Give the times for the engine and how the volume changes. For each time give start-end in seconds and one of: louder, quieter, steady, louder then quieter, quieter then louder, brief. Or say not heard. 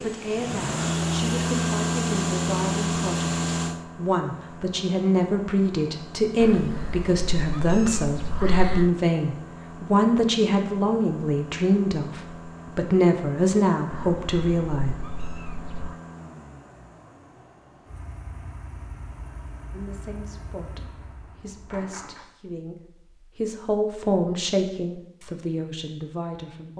0.0-22.3 quieter.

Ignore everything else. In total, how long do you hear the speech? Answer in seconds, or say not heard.
22 s.